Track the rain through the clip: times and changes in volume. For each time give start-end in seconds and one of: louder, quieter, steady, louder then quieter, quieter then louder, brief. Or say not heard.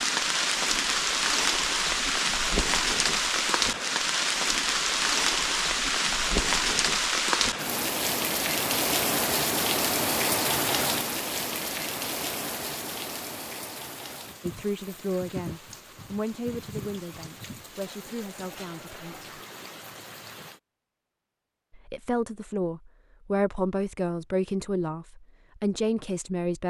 0.0-20.6 quieter.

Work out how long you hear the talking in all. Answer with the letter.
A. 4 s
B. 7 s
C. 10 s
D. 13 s
C.